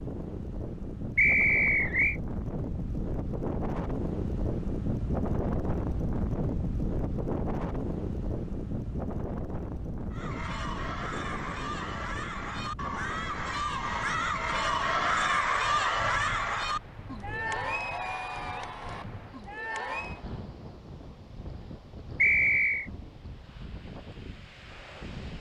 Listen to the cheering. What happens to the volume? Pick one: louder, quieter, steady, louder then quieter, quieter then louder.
louder then quieter.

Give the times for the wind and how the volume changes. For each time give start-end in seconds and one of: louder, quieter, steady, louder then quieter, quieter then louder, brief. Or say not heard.
0.0-25.3 quieter.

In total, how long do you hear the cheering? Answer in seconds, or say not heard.
10 s.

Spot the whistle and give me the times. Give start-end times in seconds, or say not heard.
1.1-2.1, 22.2-22.9.